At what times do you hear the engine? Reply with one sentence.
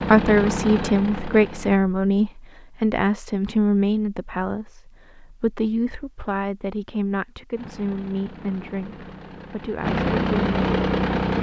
You can hear the engine from 0.0 to 1.8 s and from 7.5 to 11.3 s.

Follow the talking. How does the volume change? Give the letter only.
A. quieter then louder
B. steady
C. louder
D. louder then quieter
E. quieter
E.